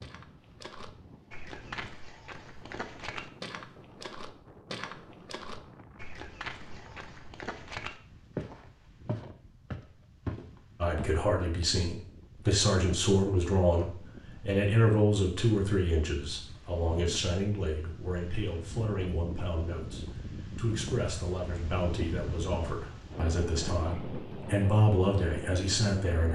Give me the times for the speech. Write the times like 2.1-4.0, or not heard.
10.8-26.3.